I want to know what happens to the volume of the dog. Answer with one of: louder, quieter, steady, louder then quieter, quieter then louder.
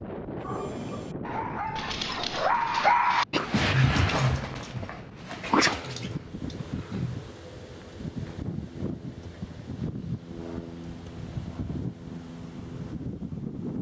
louder then quieter.